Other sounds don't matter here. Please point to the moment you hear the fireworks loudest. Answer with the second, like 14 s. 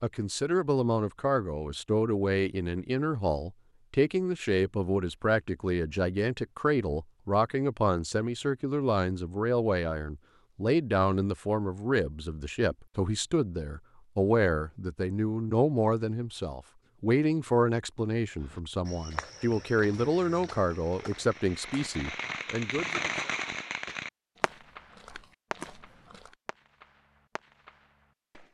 23 s.